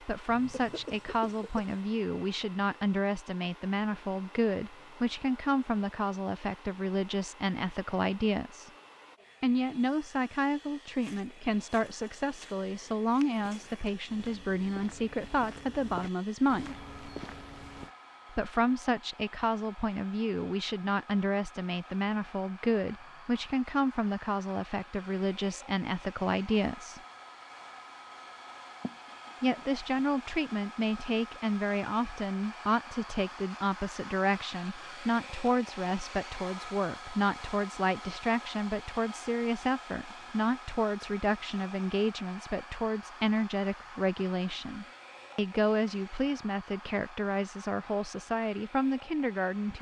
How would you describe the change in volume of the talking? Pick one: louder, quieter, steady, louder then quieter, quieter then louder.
steady.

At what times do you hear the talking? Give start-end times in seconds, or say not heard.
0.1-8.7, 9.4-16.8, 18.3-27.0, 29.4-49.7.